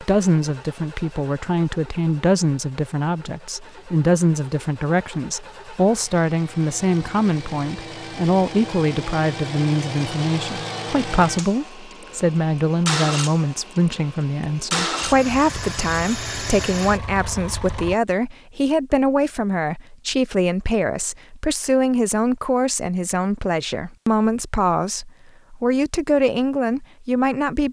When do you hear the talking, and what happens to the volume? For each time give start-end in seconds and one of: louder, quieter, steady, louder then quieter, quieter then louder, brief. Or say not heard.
0.0-27.6 steady.